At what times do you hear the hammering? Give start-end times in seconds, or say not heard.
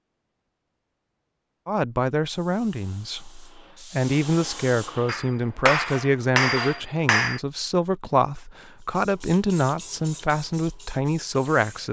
5.0-7.4.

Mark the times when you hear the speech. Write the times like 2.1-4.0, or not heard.
1.6-11.8.